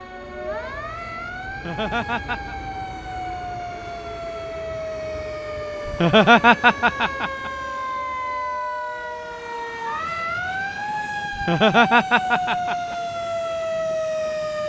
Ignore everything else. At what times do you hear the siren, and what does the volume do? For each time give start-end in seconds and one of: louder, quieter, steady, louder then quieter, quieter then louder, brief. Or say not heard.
0.0-14.6 louder.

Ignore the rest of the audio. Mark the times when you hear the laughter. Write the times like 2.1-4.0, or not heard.
1.5-2.5, 5.8-7.5, 11.3-12.9.